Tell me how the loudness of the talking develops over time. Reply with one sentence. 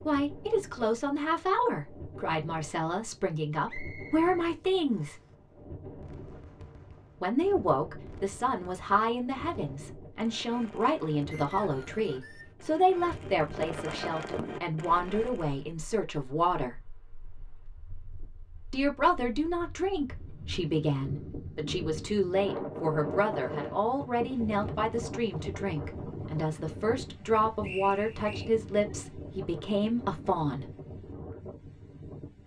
The loudness of the talking stays about the same.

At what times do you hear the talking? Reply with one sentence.
You can hear the talking from 0.1 to 5.2 s, from 7.2 to 16.8 s and from 18.7 to 30.6 s.